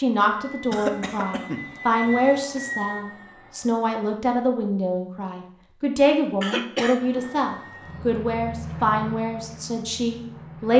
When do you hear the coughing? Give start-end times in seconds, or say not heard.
0.7-1.8, 6.4-7.0.